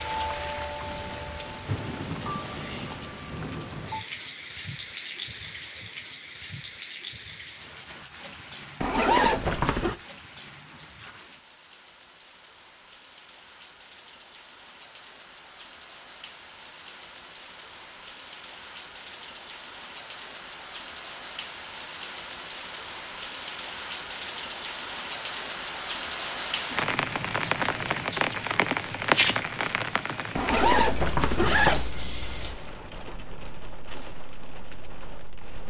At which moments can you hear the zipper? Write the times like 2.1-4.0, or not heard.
8.8-9.9, 30.4-31.9.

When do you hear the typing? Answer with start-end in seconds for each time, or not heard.
30.7-32.5.